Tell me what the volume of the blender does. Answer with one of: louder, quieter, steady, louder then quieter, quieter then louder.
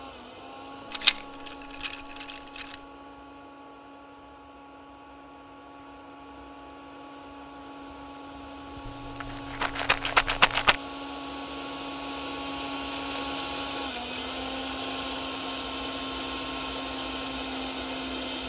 louder.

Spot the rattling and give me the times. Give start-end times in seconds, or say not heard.
0.9-2.8, 8.8-10.8, 12.9-14.2.